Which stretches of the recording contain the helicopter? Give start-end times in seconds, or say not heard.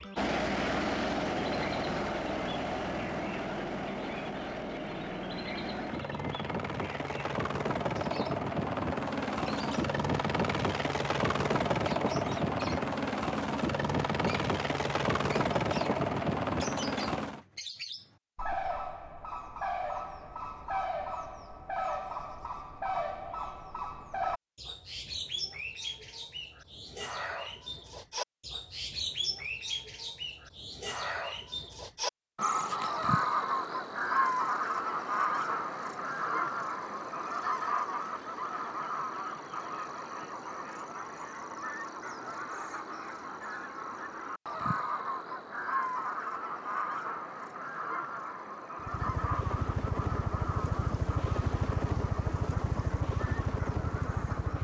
0.0-17.4, 48.8-54.5.